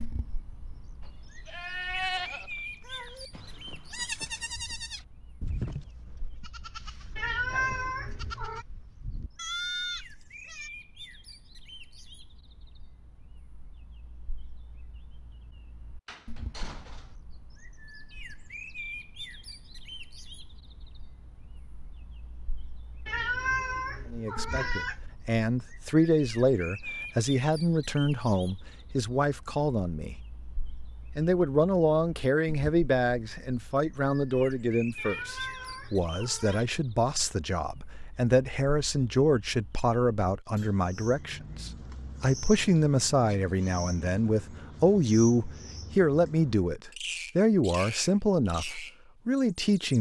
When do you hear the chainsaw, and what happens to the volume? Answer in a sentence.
The chainsaw can't be heard in this clip.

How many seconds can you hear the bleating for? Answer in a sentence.
You can hear the bleating for 10 seconds altogether.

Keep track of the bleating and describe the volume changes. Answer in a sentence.
The volume of the bleating goes down, then up.